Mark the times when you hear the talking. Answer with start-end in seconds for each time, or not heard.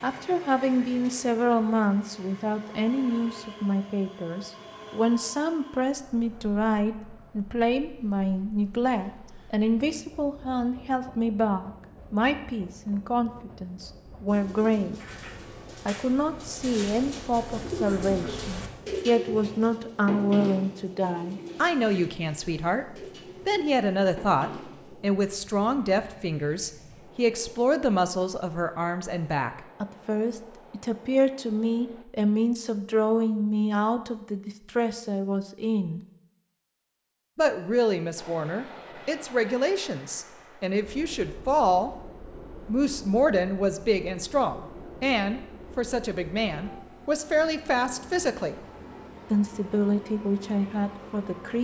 0.0-15.0, 15.8-36.0, 37.4-41.9, 42.6-48.5, 49.3-51.5.